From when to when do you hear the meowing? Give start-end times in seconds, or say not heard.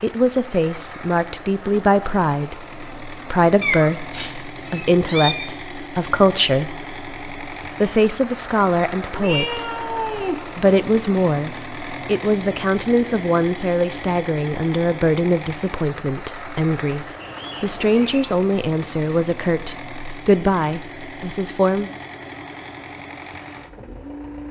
3.6-5.5, 9.1-10.4, 17.1-18.4.